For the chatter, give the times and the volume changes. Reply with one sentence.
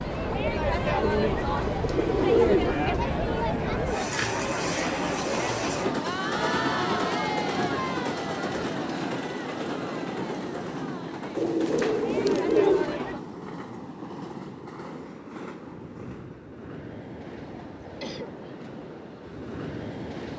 The chatter can be heard from 0.0 to 13.2 s, getting quieter.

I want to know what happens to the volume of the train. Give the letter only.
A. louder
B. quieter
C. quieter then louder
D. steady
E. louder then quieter
B.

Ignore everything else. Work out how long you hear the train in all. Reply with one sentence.
You can hear the train for 20 seconds altogether.